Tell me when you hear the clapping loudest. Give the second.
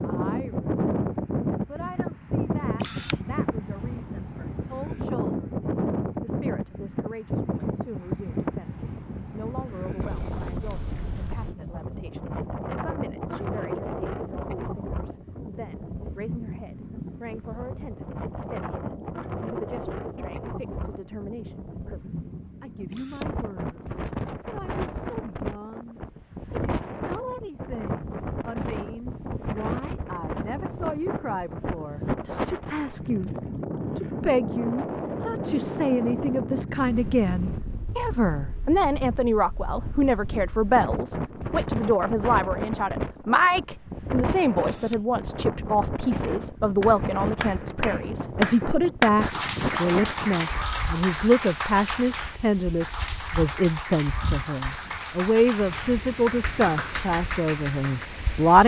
49 s.